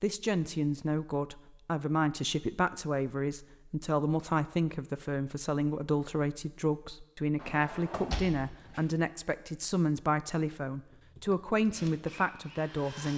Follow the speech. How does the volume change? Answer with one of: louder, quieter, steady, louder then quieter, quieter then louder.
steady.